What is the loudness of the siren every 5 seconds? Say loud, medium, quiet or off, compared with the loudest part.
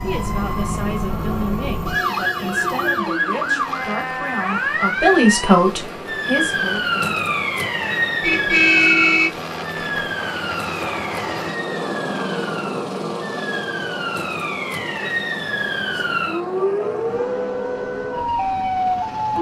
loud, loud, medium, loud.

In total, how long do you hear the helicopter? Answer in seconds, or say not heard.
19 s.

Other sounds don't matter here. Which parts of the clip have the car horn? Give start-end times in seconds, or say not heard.
8.2-10.1.